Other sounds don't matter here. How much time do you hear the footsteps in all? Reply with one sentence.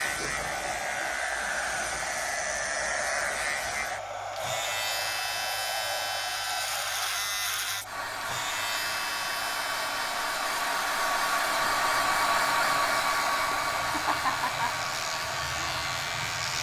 You can't hear the footsteps here.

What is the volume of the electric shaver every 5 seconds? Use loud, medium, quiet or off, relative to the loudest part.
loud, loud, medium, loud.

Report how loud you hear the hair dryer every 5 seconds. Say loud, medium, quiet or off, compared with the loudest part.
medium, medium, loud, medium.